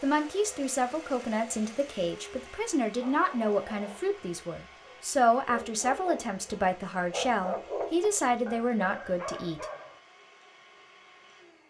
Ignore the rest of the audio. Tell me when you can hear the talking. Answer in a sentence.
The talking can be heard from 0.0 to 9.7 s.